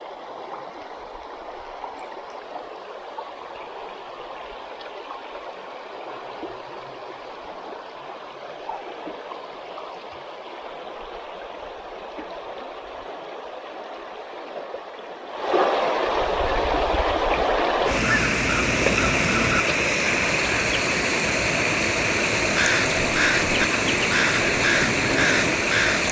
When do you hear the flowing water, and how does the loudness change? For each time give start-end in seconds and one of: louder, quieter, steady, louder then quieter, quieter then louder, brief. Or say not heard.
0.0-26.0 louder.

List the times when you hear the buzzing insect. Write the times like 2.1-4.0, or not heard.
not heard.